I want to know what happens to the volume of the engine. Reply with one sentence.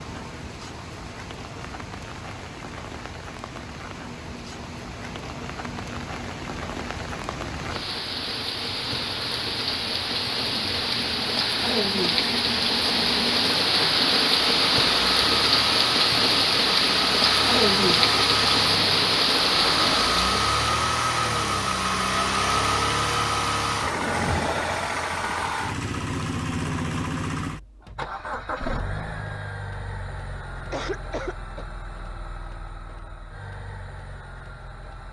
The volume of the engine goes up, then down.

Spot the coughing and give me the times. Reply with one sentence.
You can hear the coughing from 30.5 to 31.6 s.